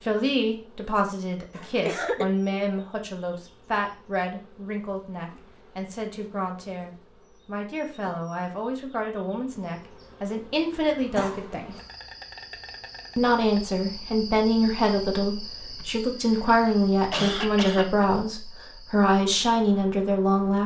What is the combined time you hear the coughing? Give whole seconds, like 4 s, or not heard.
4 s.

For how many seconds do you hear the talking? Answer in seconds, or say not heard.
19 s.